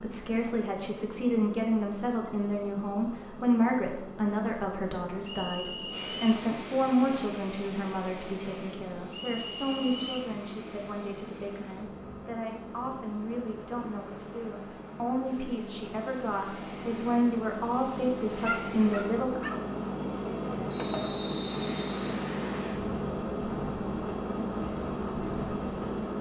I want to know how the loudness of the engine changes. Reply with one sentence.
The volume of the engine goes up.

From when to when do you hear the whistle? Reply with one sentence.
You can hear the whistle from 5.2 to 6.4 s, from 9.1 to 10.3 s and from 20.7 to 22.2 s.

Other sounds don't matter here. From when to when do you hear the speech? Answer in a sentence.
The speech can be heard from 0.0 to 19.4 s.